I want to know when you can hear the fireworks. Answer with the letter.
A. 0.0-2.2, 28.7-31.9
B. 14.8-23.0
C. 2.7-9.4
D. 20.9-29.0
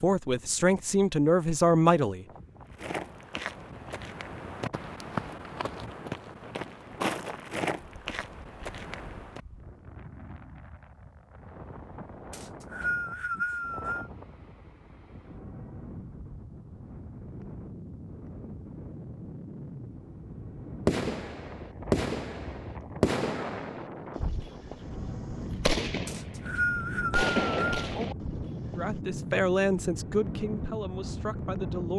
D.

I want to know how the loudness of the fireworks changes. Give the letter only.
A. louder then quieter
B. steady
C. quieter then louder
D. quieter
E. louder
C.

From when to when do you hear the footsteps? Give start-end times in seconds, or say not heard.
2.7-9.4.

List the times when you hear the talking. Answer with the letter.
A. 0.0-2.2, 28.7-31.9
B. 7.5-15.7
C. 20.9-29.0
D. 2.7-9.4
A.